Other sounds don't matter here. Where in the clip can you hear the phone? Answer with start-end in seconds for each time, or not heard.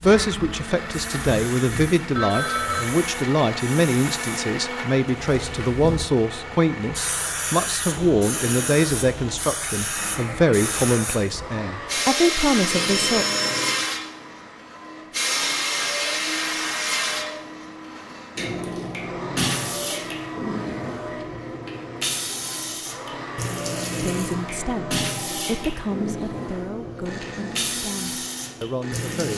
2.1-2.9, 12.7-13.8, 25.1-25.8.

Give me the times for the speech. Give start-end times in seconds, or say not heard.
0.0-13.2, 24.0-29.3.